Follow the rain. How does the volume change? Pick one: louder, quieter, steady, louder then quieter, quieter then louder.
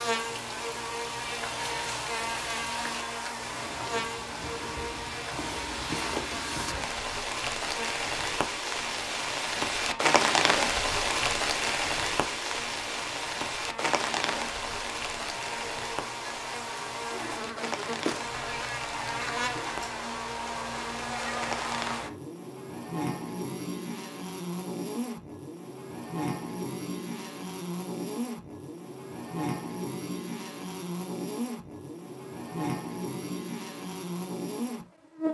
louder then quieter.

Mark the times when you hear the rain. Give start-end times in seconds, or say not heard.
0.0-22.1.